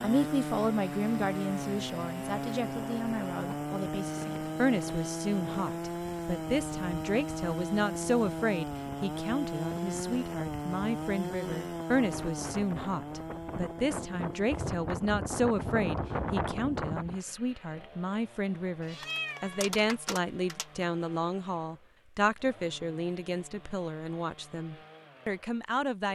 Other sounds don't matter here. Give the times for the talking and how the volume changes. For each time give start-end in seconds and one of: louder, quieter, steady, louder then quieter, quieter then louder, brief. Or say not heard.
0.0-26.1 steady.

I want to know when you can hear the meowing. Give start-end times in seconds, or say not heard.
18.8-20.9.